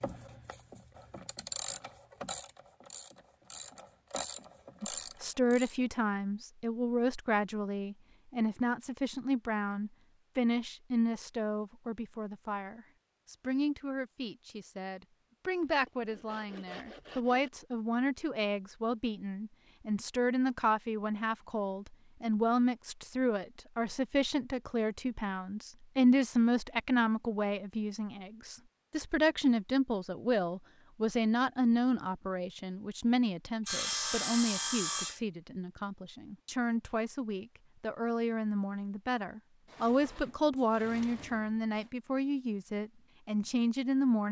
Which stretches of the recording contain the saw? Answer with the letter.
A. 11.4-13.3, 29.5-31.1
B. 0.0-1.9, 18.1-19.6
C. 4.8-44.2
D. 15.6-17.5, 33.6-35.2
D.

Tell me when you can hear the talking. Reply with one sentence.
The talking can be heard from 4.8 to 44.2 s.